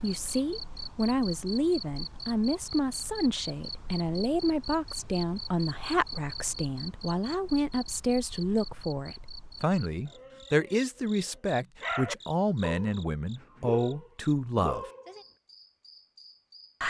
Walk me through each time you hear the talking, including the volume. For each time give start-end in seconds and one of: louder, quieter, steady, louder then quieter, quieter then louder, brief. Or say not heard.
0.0-14.8 steady.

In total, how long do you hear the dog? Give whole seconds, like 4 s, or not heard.
5 s.